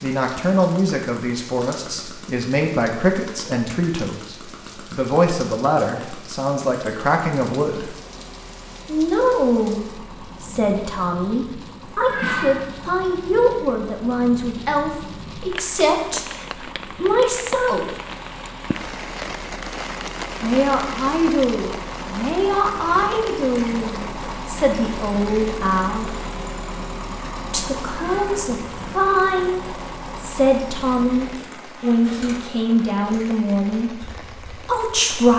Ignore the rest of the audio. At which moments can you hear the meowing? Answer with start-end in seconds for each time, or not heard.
12.1-12.7, 27.9-28.5.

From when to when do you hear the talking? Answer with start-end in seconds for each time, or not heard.
0.0-8.0, 8.8-17.9, 20.4-26.1, 27.5-35.3.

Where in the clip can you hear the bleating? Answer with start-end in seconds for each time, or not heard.
not heard.